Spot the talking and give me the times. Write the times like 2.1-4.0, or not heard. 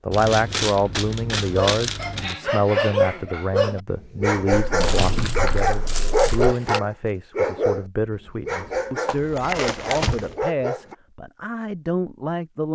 0.1-12.7.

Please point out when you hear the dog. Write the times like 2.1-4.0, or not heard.
1.5-10.9.